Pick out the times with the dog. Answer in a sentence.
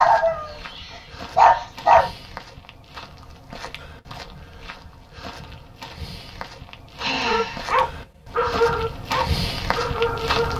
The dog can be heard from 0.0 to 2.1 s and from 7.2 to 10.5 s.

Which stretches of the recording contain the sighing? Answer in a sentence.
The sighing can be heard from 7.0 to 7.8 s.